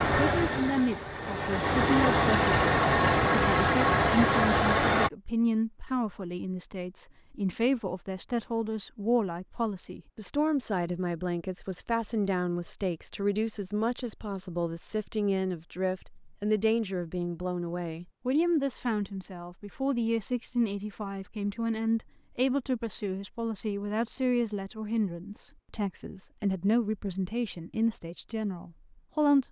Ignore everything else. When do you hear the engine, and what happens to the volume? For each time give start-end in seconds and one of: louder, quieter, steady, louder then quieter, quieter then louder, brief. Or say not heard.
0.0-5.1 louder.